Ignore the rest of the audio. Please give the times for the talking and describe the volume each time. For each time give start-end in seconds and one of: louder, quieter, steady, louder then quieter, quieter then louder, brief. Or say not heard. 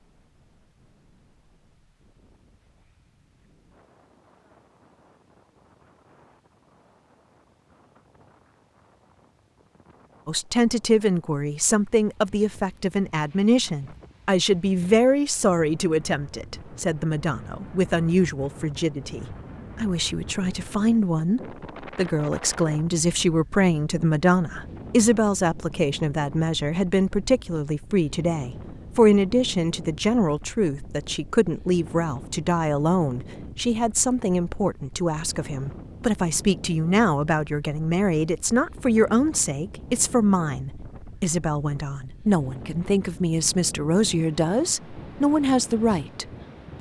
10.2-46.7 steady.